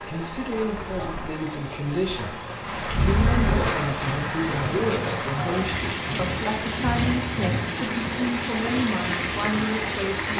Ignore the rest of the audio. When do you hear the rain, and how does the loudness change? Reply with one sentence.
You can hear the rain from 0.0 to 10.3 s, getting louder.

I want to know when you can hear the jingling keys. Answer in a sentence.
You can hear the jingling keys from 2.9 to 3.7 s.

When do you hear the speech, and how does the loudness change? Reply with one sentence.
The speech can be heard from 0.1 to 10.3 s, at a steady volume.